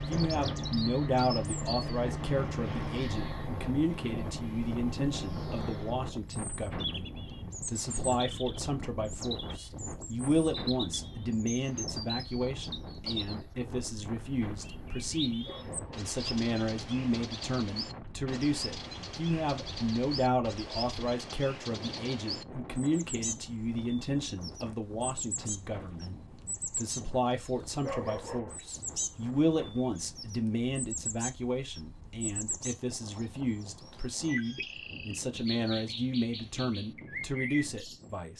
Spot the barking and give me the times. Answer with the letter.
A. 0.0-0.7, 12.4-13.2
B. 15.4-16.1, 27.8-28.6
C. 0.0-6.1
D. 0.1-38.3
B.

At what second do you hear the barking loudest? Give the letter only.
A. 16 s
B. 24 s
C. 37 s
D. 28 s
D.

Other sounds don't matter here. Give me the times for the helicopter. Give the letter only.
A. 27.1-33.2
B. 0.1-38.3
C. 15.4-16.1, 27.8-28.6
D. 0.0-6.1
D.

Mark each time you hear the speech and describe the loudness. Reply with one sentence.
The speech can be heard from 0.1 to 38.3 s, at a steady volume.